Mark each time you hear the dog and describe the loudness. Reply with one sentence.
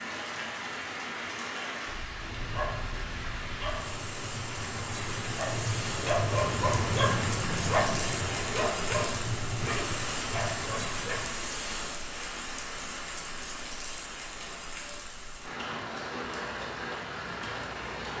You can hear the dog from 2.1 to 11.3 s, getting louder then quieter.